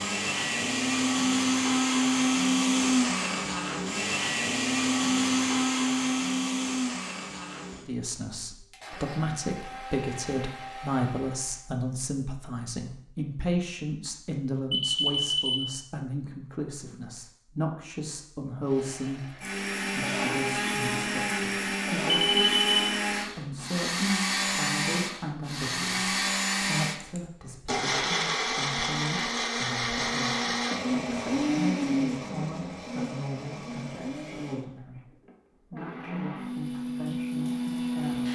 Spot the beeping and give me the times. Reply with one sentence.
You can hear the beeping from 14.7 to 15.7 s and from 22.3 to 22.9 s.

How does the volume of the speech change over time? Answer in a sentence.
The volume of the speech goes down.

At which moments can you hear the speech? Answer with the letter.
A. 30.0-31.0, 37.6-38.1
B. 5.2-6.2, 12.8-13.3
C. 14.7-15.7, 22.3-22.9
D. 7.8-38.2
D.